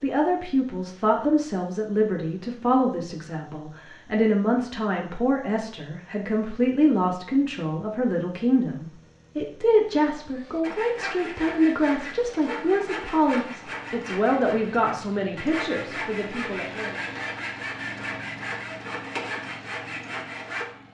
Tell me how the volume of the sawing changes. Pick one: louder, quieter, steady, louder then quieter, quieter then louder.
steady.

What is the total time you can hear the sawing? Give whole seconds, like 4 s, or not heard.
10 s.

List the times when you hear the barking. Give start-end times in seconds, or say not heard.
not heard.